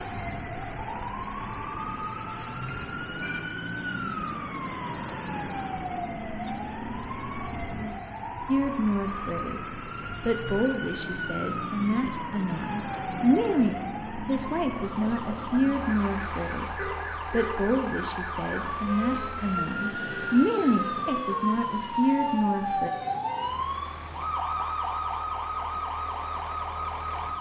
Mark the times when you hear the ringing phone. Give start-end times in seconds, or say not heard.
1.4-3.4, 16.8-17.6.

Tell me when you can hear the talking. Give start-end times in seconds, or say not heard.
8.4-22.9.